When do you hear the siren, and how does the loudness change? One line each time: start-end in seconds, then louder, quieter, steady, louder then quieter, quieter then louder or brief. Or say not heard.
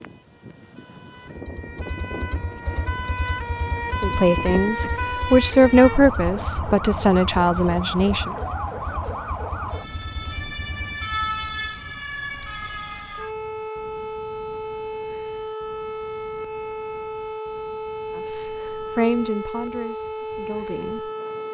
0.0-21.4 steady.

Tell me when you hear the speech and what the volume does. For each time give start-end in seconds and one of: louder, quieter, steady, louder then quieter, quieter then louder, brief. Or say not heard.
4.0-8.3 louder then quieter
18.1-21.1 brief.